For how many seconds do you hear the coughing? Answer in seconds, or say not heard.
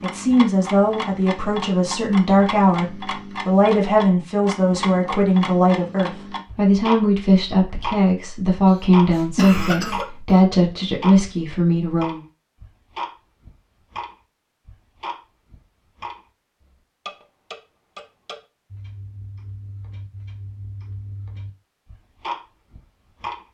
2 s.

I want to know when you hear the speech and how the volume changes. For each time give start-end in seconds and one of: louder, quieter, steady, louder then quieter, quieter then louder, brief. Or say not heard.
0.0-12.2 steady.